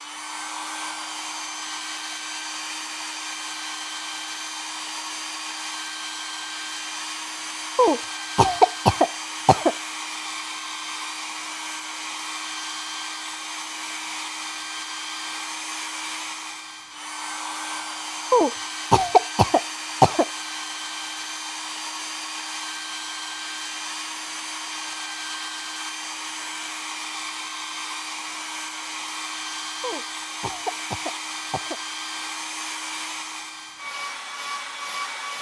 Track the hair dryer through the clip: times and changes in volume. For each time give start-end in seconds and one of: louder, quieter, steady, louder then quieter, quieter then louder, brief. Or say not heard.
0.0-35.3 steady.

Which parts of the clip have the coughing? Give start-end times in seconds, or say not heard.
7.8-9.8, 18.3-20.2, 29.8-31.8.